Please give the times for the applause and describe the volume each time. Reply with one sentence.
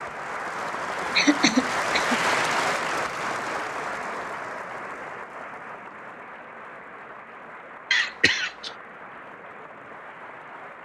You can hear the applause from 0.0 to 10.8 s, getting quieter.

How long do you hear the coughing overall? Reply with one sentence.
You can hear the coughing for 2 seconds altogether.